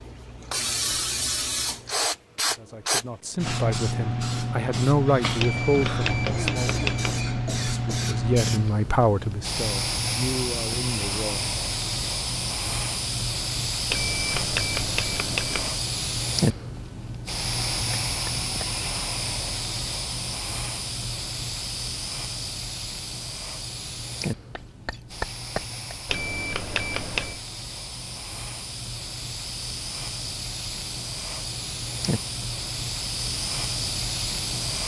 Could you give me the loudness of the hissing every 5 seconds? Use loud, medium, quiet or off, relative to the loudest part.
loud, loud, loud, loud, medium, medium, loud.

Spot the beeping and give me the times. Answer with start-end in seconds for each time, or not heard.
5.3-7.2, 13.9-15.7, 26.1-27.4.